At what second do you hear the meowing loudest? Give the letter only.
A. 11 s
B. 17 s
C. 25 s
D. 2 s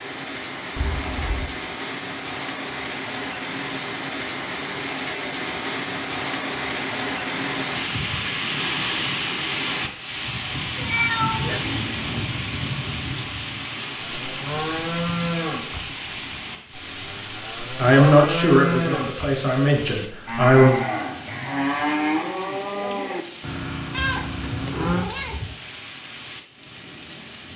A.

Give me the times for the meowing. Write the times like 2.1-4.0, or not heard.
0.8-1.5, 10.7-11.7, 23.9-25.6.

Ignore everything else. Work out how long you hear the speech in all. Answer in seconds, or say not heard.
3 s.